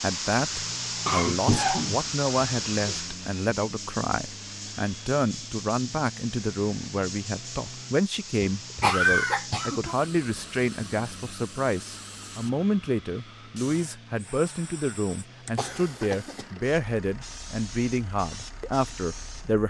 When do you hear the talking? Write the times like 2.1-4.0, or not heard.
0.0-19.6.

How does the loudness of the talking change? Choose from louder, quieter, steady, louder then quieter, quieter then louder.
steady.